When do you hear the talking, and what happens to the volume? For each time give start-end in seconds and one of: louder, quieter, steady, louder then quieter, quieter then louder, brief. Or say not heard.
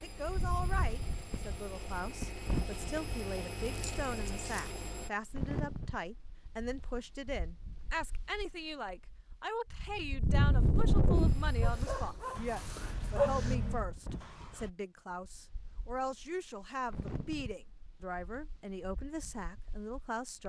0.0-20.4 steady.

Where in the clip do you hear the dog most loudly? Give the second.
13 s.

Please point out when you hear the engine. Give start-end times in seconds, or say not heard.
0.0-5.1, 11.1-14.7.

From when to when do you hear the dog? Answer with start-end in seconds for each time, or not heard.
3.6-4.9, 11.6-13.6.